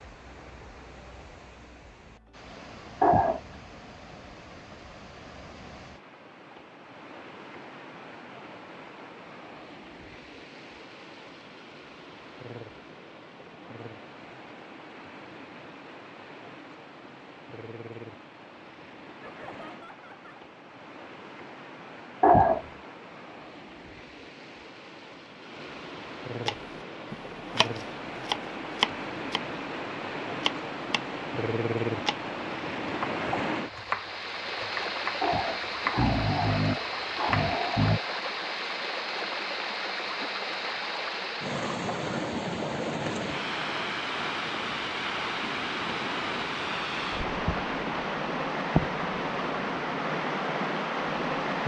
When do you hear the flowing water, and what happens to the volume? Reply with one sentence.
You can hear the flowing water from 0.0 to 51.6 s, getting louder.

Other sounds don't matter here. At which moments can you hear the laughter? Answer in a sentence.
You can hear the laughter from 19.2 to 20.4 s.